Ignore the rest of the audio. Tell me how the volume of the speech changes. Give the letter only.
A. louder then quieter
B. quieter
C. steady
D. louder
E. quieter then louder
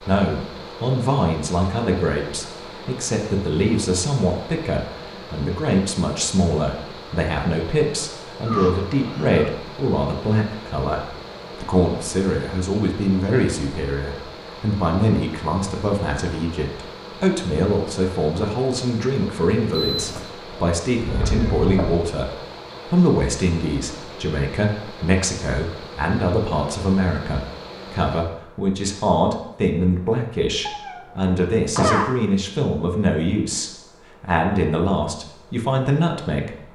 C.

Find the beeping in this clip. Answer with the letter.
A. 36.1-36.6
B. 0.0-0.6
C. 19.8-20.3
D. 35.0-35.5
C.